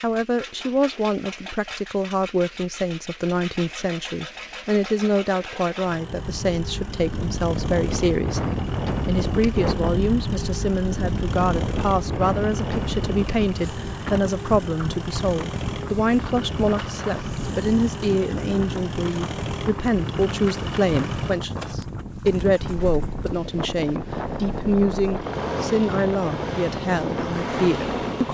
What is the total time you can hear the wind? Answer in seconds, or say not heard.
22 s.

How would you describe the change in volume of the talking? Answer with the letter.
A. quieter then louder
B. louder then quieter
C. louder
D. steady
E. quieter
D.